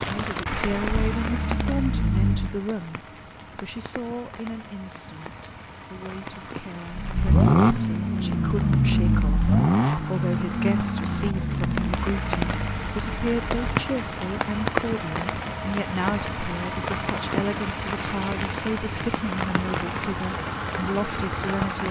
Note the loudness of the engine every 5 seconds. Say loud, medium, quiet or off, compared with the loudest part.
medium, loud, medium, off, off.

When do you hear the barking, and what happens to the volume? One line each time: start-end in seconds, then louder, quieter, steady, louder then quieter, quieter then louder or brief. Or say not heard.
not heard.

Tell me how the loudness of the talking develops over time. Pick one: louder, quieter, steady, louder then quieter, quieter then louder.
quieter then louder.